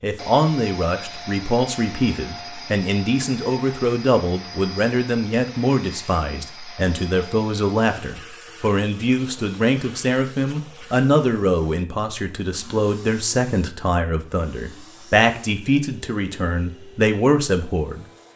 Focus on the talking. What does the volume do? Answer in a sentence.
The volume of the talking stays about the same.